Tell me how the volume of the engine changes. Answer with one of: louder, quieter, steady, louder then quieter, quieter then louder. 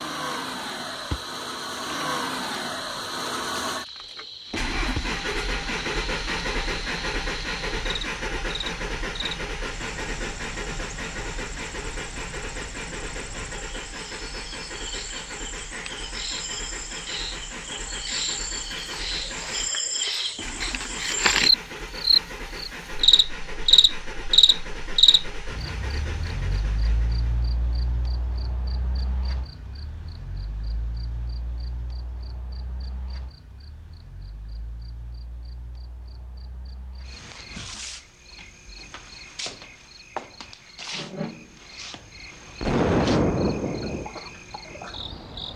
quieter.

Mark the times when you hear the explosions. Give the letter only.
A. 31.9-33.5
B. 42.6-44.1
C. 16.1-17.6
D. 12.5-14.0
B.